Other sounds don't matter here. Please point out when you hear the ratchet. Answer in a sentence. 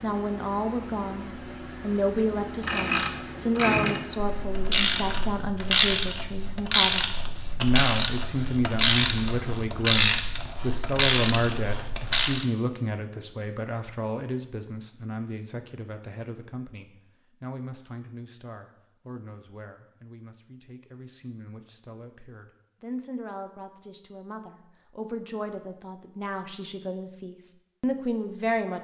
You can hear the ratchet from 2.3 to 12.4 s.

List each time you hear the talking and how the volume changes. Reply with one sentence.
The talking can be heard from 0.0 to 28.7 s, getting quieter then louder.